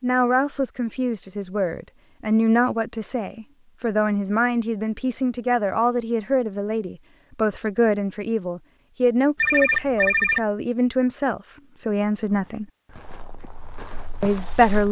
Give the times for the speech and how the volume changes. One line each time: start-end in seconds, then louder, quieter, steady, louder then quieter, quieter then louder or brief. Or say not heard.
0.0-12.7 steady
14.2-14.8 brief.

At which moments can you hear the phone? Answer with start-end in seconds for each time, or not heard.
9.3-10.4.